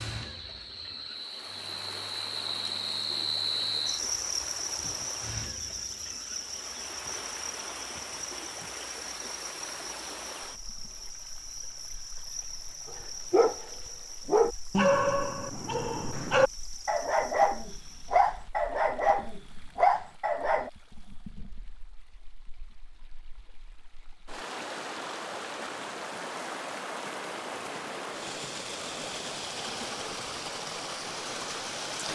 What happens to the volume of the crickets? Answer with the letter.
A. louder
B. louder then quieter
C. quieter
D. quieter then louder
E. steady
C.